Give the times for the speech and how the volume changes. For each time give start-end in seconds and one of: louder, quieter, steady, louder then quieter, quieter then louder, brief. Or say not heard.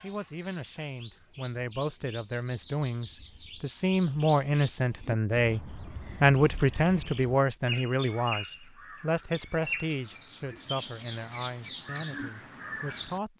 0.0-13.3 louder then quieter.